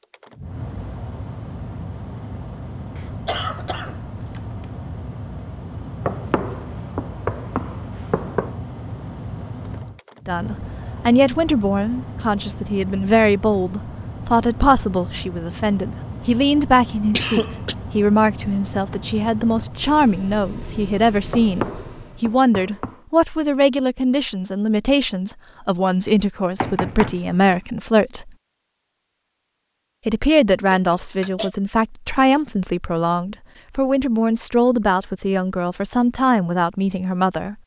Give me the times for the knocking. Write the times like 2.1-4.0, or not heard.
6.0-8.6, 21.3-23.0, 26.6-27.6.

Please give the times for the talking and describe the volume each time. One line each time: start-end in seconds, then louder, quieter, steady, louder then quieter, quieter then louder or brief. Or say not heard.
10.2-28.3 steady
30.1-37.5 steady.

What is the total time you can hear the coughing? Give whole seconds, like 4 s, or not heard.
3 s.